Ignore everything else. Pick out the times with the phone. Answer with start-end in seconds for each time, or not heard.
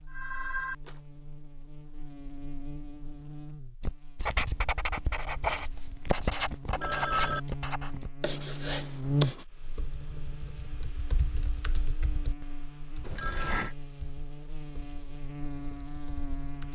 0.1-0.9, 6.7-7.4, 13.0-13.8.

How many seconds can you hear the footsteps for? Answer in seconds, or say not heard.
not heard.